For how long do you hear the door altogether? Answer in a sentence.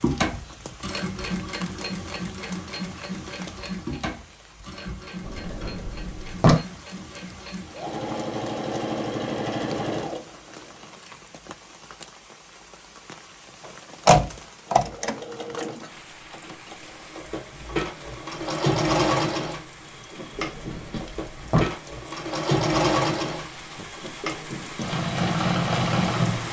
You can hear the door for 4 seconds altogether.